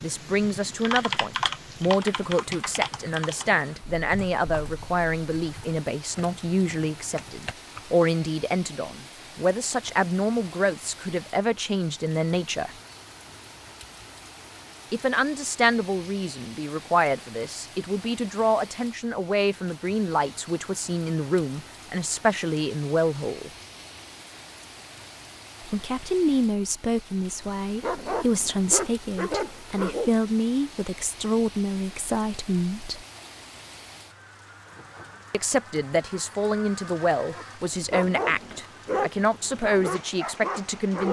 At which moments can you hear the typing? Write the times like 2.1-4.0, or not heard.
0.0-8.0.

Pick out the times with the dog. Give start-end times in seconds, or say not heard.
27.8-30.1, 37.3-41.0.